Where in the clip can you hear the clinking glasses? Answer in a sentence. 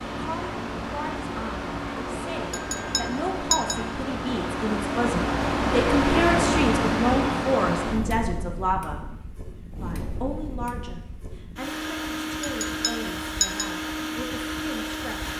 You can hear the clinking glasses from 2.5 to 3.9 s and from 12.4 to 13.8 s.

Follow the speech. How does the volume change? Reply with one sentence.
The loudness of the speech goes up, then down.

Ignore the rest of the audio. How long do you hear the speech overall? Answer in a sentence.
You can hear the speech for 14 seconds altogether.